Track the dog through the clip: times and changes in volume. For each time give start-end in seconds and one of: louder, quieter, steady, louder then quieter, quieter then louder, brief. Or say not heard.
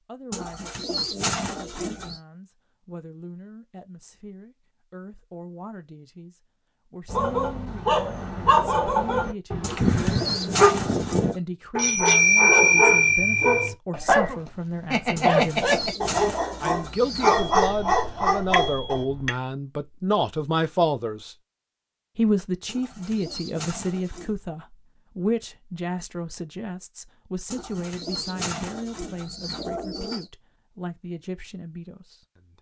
7.1-19.1 steady.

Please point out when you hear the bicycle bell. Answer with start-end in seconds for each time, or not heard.
11.8-13.7, 17.4-19.4.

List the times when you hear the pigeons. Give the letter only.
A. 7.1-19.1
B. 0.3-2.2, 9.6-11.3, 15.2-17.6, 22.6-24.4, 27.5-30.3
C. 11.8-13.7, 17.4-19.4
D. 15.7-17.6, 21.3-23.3
B.